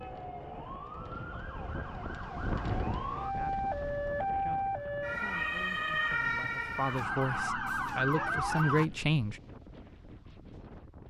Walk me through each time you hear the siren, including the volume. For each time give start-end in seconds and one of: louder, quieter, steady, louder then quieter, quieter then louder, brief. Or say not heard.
0.0-8.8 louder.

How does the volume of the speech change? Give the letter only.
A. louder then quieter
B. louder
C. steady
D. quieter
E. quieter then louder
B.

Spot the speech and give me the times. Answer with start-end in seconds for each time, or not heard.
3.1-9.4.